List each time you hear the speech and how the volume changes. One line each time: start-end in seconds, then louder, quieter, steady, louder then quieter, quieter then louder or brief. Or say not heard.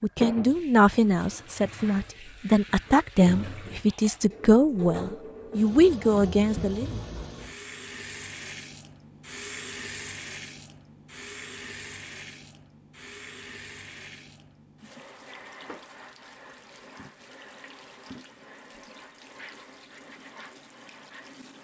0.0-7.0 steady.